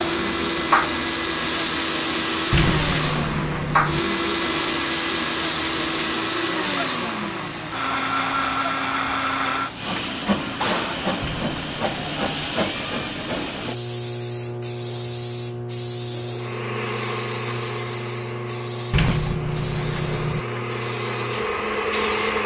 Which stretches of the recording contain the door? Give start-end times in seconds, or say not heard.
2.5-4.0, 11.2-12.6, 18.9-20.4.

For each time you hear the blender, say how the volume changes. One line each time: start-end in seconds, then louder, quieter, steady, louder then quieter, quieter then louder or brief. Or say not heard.
0.0-11.1 steady
16.4-22.4 quieter then louder.